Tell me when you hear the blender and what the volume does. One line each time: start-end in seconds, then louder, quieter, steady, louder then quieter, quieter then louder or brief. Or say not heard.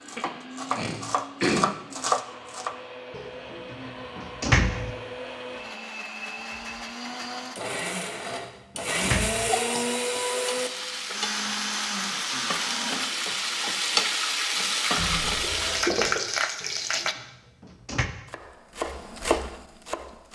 0.0-13.1 louder.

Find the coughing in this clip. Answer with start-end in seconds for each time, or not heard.
0.1-1.7, 9.4-10.2, 14.9-16.2.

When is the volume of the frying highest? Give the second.
14 s.